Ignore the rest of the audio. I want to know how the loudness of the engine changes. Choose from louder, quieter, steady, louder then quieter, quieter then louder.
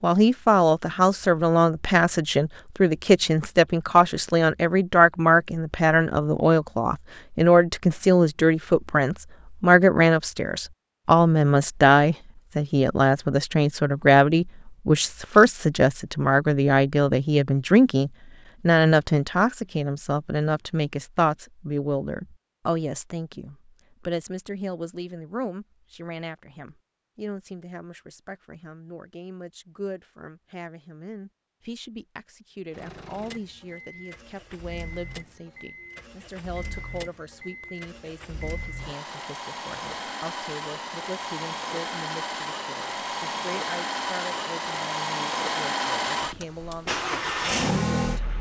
louder.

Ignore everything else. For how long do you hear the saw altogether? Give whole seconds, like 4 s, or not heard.
not heard.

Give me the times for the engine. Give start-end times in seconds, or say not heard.
32.7-48.3.